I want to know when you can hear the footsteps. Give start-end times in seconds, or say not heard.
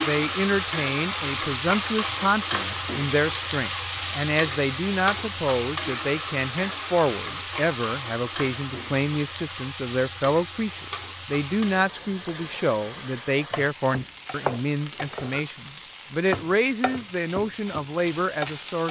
not heard.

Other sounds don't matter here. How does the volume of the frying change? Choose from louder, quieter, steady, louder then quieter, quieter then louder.
quieter.